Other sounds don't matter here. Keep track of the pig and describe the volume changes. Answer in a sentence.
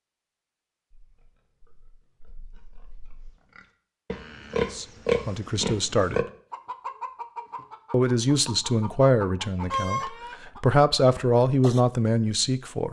The volume of the pig goes up.